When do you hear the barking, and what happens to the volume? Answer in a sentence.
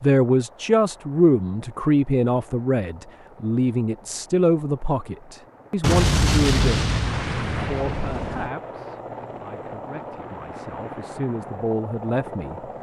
You can't hear the barking here.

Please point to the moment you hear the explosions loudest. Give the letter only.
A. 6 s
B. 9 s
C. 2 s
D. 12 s
A.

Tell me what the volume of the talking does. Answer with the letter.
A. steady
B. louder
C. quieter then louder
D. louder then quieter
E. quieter
C.